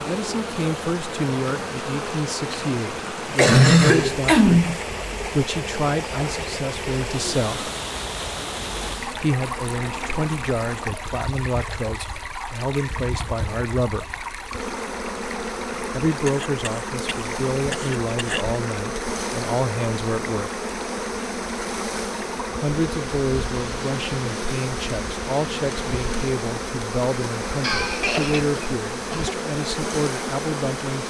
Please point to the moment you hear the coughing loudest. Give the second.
4 s.